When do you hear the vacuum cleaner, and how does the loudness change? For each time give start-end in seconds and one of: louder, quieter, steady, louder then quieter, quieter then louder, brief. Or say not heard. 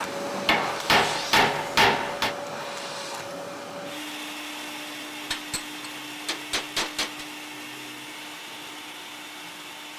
0.0-9.9 quieter.